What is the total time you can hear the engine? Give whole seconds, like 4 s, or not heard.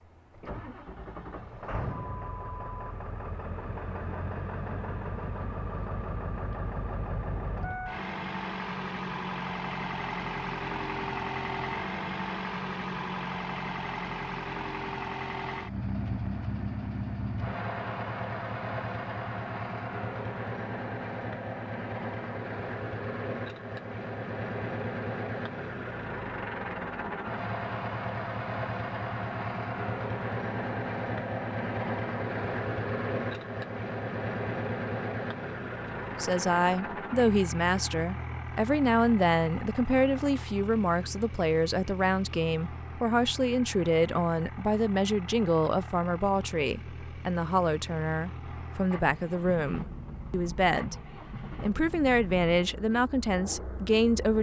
54 s.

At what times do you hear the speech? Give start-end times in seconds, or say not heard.
36.2-51.0, 51.6-54.3.